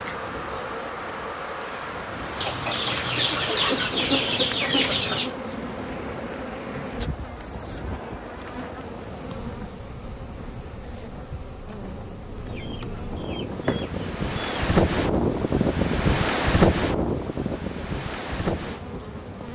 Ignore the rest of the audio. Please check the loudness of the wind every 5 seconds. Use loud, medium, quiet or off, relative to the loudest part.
quiet, quiet, medium, loud.